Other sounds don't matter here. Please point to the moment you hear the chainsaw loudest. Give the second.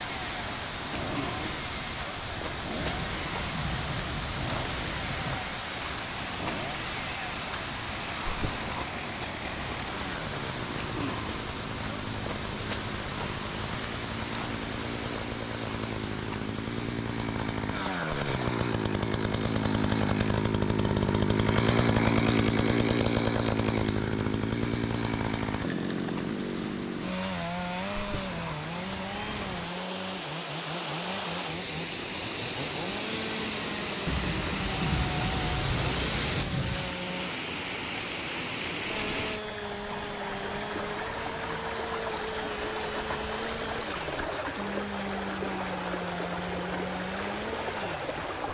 22 s.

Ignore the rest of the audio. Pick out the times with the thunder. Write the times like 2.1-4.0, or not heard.
2.8-5.5, 34.0-37.0.